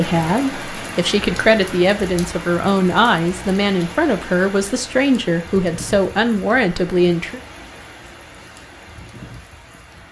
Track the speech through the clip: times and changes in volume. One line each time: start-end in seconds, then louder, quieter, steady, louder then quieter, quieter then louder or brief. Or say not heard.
0.0-7.4 steady.